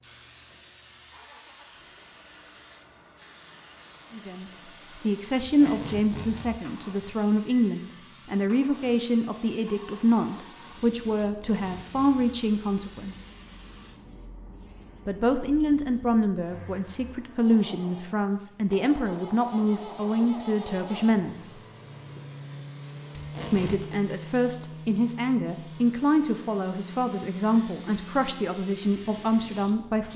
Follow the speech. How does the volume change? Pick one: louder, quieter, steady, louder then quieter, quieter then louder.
steady.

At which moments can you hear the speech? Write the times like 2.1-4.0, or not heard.
4.1-13.2, 15.1-21.6, 23.5-30.1.